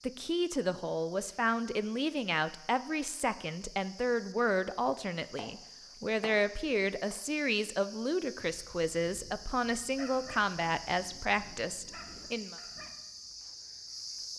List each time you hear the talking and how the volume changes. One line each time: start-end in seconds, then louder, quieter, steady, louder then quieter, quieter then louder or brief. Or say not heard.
0.0-12.6 steady.